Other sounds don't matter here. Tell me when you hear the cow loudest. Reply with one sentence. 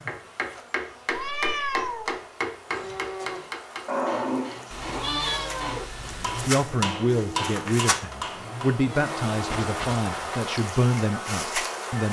The loudest moment of the cow is at 4 seconds.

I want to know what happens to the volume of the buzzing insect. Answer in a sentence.
The volume of the buzzing insect goes up.